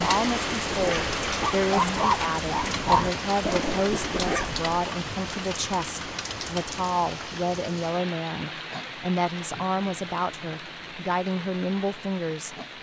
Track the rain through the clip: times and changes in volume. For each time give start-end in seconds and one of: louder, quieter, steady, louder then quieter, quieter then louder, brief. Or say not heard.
0.0-12.7 quieter.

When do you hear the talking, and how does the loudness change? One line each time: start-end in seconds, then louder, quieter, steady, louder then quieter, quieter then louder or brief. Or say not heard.
0.0-12.6 steady.